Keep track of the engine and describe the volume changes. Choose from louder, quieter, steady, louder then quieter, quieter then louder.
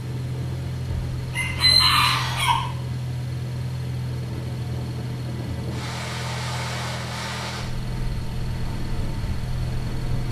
steady.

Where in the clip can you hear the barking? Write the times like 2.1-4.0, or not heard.
not heard.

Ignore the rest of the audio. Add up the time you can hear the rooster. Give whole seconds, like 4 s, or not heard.
2 s.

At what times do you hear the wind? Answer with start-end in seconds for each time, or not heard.
0.0-10.2.